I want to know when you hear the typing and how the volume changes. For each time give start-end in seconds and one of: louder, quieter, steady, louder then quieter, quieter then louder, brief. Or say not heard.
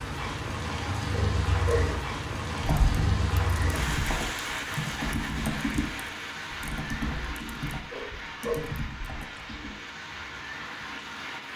2.6-9.8 quieter.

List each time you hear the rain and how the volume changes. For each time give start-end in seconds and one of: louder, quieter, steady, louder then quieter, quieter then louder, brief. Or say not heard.
0.0-11.5 quieter.